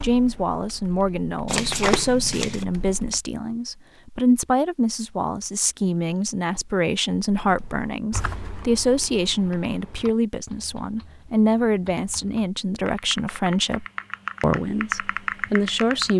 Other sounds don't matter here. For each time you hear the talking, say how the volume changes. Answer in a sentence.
The talking can be heard from 0.0 to 16.1 s, at a steady volume.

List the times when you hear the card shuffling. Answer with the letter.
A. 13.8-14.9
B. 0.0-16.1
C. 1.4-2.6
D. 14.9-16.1
C.